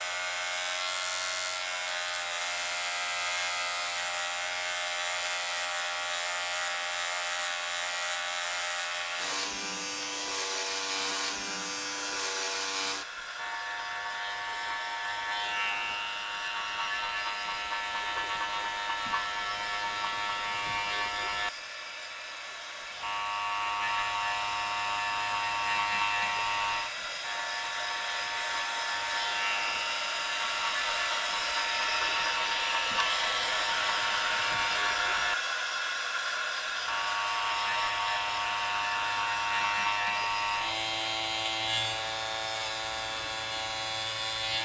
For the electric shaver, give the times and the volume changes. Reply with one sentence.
The electric shaver can be heard from 0.0 to 44.5 s, at a steady volume.